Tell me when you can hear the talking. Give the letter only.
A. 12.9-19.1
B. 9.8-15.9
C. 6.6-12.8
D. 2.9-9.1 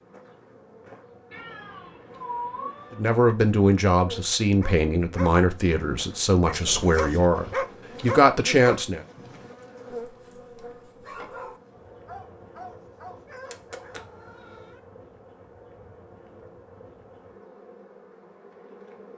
D.